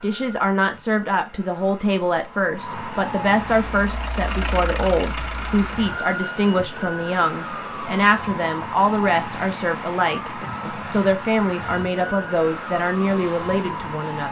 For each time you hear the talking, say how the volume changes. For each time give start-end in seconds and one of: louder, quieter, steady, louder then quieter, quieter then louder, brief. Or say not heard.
0.0-14.2 steady.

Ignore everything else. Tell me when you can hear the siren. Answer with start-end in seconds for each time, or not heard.
0.0-14.2.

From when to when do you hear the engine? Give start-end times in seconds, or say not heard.
3.5-6.0.